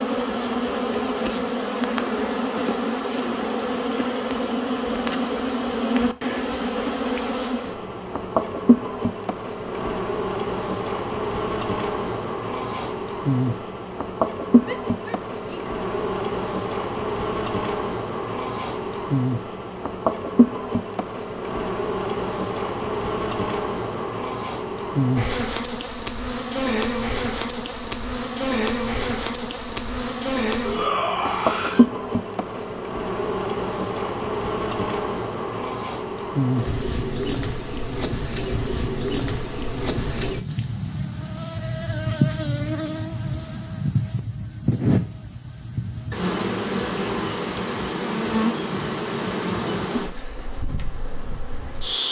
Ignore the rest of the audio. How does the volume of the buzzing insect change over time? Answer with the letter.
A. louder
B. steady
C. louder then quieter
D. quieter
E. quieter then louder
B.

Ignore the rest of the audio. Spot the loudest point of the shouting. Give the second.
31 s.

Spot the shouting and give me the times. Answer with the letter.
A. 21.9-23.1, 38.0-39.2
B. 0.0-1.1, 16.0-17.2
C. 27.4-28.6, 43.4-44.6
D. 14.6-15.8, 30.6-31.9
D.